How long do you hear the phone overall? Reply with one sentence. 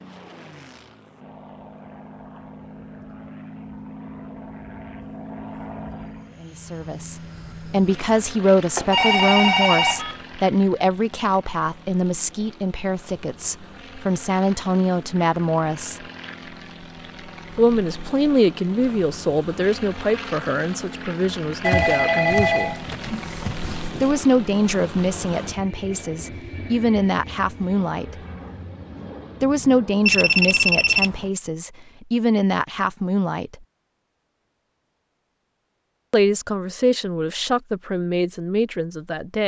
The phone can be heard for 5 seconds in total.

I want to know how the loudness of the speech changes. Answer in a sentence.
The volume of the speech stays about the same.